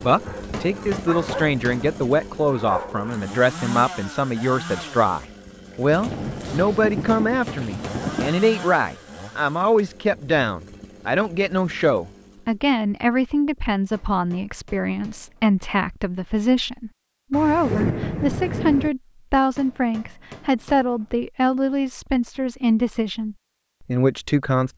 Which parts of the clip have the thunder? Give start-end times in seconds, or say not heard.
5.9-8.4, 17.3-18.9.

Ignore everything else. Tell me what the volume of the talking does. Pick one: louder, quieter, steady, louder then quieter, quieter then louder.
steady.